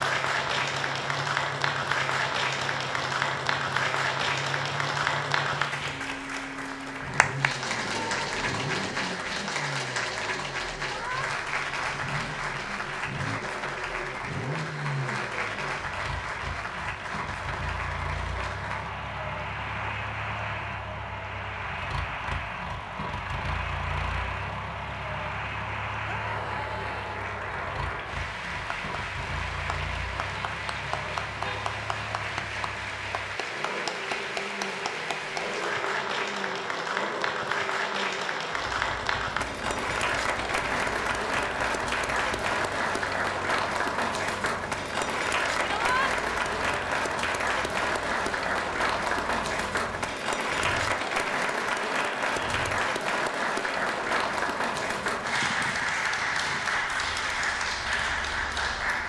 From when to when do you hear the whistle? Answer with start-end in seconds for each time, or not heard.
not heard.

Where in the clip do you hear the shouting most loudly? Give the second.
46 s.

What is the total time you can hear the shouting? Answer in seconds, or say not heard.
2 s.